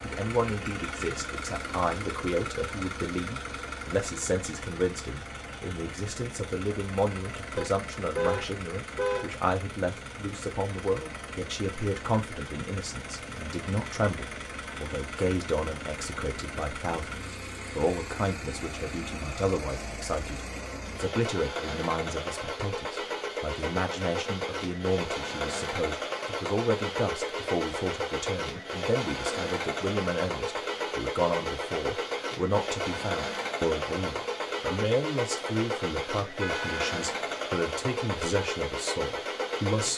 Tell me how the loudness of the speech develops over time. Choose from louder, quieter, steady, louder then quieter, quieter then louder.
steady.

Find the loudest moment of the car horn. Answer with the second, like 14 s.
8 s.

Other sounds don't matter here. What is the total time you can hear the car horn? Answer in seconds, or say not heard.
2 s.